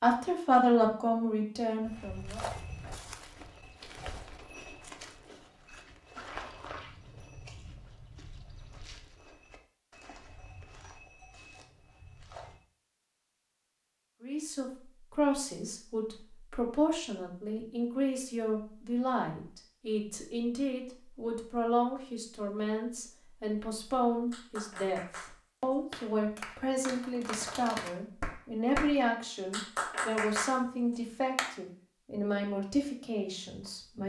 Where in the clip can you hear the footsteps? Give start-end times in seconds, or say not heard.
1.9-12.6.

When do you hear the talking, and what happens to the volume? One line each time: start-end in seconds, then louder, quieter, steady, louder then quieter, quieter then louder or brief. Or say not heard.
0.0-2.5 brief
14.2-34.0 steady.